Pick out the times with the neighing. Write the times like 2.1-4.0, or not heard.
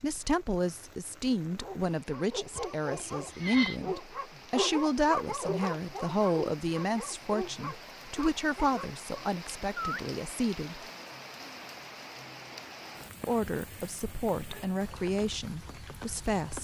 2.5-3.8.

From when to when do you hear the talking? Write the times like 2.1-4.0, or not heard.
0.0-10.8, 13.2-16.5.